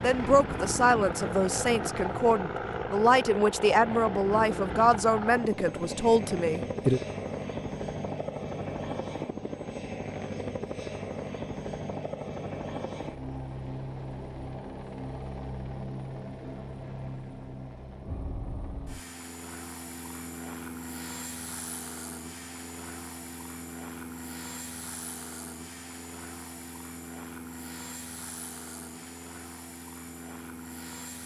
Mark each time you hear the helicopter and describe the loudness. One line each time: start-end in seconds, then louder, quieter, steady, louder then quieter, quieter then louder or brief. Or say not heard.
0.0-31.2 quieter.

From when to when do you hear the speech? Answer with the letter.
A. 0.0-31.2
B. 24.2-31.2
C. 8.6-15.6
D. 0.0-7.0
D.